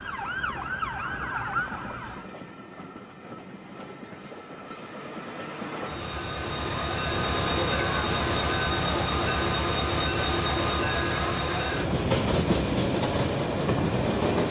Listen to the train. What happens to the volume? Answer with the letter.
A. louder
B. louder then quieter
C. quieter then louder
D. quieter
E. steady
A.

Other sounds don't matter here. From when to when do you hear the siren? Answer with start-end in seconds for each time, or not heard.
0.0-2.3.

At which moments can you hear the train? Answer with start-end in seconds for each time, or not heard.
0.0-14.4.